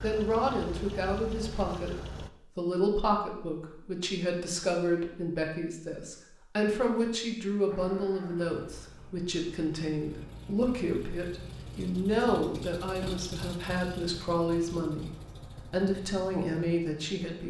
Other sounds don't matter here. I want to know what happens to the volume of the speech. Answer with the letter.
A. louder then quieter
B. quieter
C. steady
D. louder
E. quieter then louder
C.